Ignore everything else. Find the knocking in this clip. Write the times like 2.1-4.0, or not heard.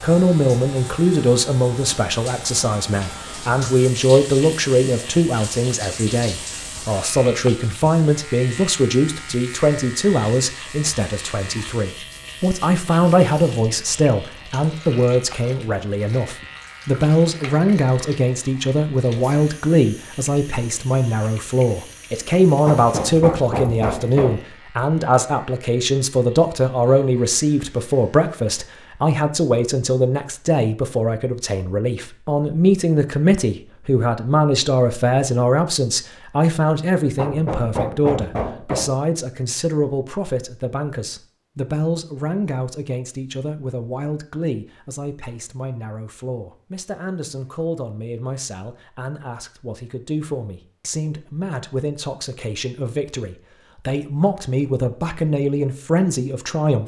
22.6-24.4, 37.1-39.0.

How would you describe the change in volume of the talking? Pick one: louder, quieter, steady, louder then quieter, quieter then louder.
quieter.